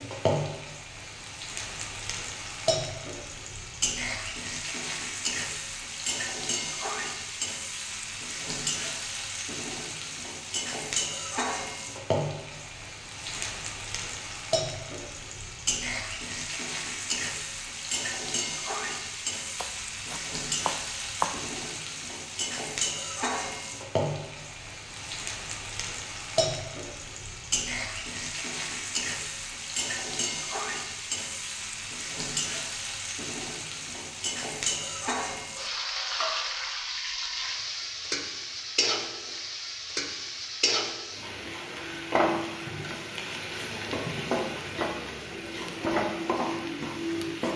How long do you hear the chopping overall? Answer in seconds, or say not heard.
2 s.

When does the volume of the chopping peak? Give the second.
21 s.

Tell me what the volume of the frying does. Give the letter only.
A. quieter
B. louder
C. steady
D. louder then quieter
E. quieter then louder
C.